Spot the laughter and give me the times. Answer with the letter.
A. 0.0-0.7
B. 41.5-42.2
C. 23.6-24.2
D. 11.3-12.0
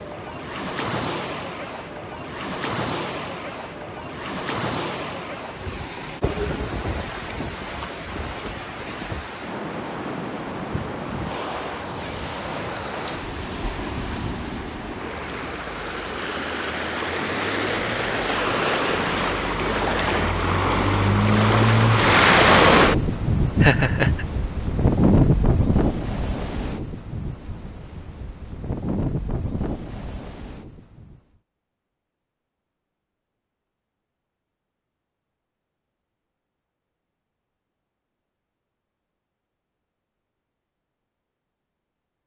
C.